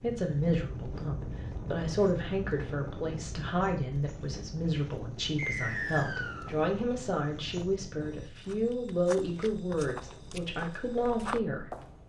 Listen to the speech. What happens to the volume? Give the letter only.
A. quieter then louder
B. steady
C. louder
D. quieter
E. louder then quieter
B.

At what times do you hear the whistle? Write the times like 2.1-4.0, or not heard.
5.3-6.5.